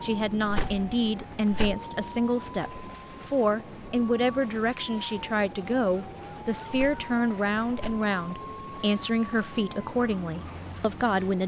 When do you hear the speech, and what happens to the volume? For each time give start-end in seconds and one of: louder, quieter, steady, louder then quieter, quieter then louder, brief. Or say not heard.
0.0-11.4 steady.